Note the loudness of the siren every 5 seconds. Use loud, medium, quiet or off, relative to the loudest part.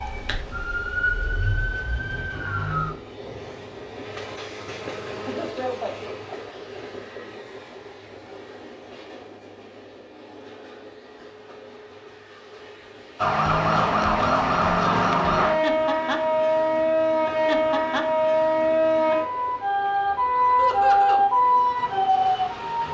medium, off, loud, loud, loud.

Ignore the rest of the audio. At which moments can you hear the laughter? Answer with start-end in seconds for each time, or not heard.
5.2-6.1, 20.6-21.2.